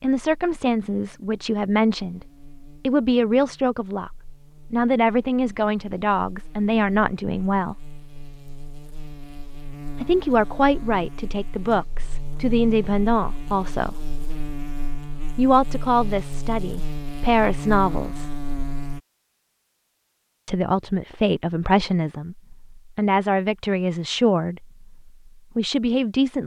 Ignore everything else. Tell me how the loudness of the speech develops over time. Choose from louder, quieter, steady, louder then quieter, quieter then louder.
steady.